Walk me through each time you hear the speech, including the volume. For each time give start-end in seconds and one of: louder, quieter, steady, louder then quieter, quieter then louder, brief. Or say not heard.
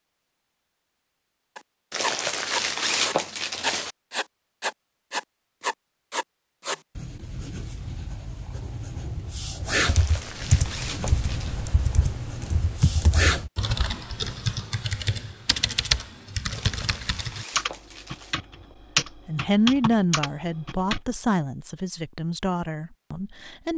19.2-23.7 quieter.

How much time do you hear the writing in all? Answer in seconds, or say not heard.
12 s.